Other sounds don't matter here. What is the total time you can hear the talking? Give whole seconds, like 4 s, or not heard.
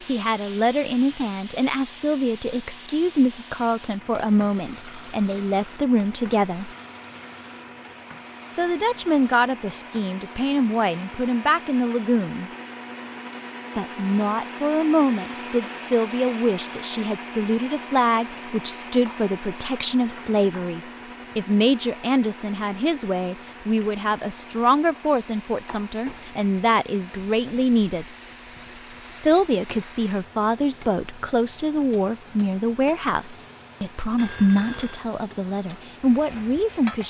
33 s.